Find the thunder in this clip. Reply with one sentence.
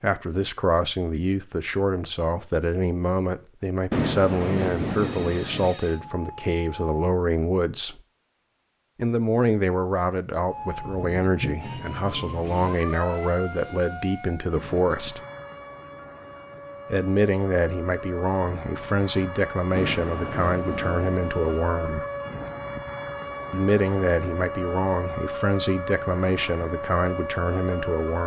The thunder can be heard from 3.9 to 5.8 s and from 19.8 to 21.6 s.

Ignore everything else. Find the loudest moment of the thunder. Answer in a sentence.
The loudest moment of the thunder is at 4 seconds.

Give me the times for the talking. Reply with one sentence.
The talking can be heard from 0.0 to 8.0 s, from 8.9 to 15.2 s, from 16.9 to 22.1 s and from 23.5 to 28.2 s.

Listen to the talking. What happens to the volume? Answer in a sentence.
The volume of the talking stays about the same.